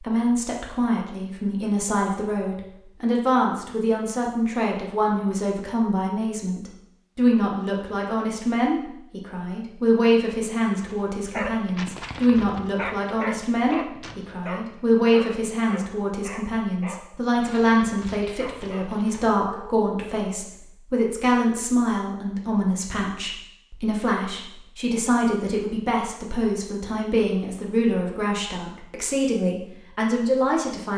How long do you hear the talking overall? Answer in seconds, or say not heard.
31 s.